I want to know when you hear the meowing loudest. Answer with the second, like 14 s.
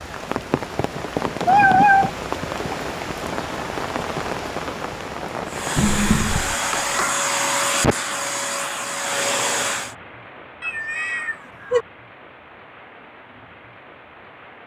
2 s.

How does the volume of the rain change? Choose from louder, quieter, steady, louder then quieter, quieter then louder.
quieter.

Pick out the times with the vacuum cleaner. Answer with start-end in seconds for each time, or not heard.
5.5-9.9.